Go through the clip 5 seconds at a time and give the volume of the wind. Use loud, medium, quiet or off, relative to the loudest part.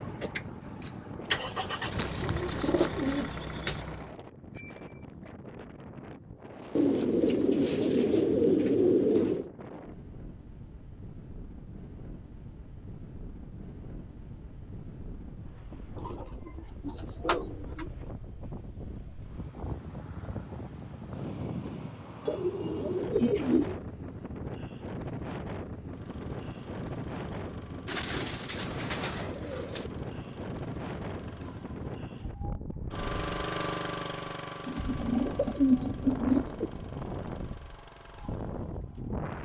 medium, medium, medium, medium, loud, loud, loud, loud.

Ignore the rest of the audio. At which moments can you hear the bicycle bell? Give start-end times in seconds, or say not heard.
4.5-5.3.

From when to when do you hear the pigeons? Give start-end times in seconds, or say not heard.
1.9-3.9, 6.8-9.5, 16.0-17.9, 22.2-23.8, 27.9-29.9, 34.6-36.7.